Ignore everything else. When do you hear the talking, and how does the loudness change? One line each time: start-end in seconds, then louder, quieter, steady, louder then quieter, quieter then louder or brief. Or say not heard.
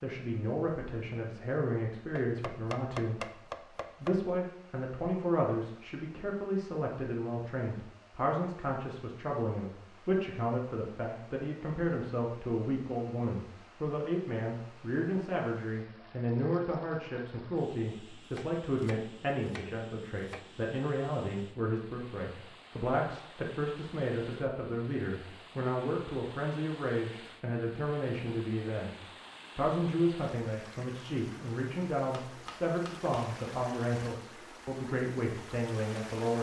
0.0-36.3 steady.